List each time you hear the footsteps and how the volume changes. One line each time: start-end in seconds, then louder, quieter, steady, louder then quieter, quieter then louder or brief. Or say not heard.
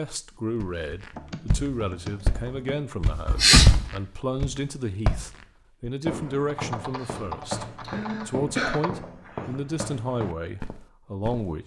0.5-11.5 louder then quieter.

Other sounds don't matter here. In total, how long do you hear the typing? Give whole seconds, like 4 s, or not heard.
4 s.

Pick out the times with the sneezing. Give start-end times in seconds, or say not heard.
3.2-3.9, 7.0-8.8.